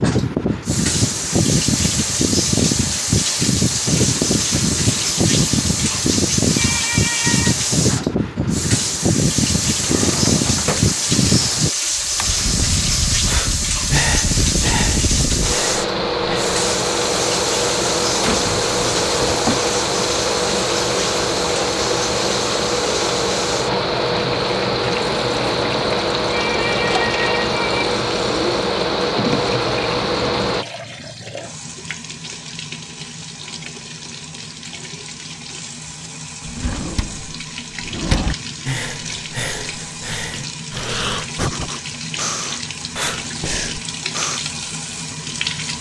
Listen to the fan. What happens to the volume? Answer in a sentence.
The volume of the fan stays about the same.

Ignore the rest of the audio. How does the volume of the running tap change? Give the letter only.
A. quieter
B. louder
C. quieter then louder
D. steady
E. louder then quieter
A.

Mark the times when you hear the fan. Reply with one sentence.
You can hear the fan from 0.0 to 30.6 s.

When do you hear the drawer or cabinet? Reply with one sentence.
You can hear the drawer or cabinet from 9.7 to 10.9 s, from 18.2 to 19.6 s and from 36.5 to 38.4 s.